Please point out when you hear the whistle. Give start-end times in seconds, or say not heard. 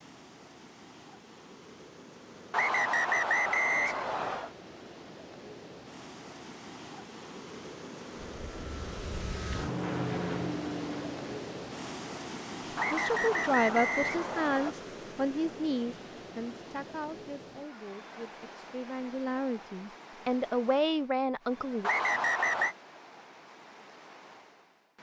2.5-4.5, 12.8-14.8, 21.8-22.8.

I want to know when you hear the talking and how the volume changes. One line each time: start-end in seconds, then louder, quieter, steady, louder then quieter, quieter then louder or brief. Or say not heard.
12.9-21.9 quieter then louder.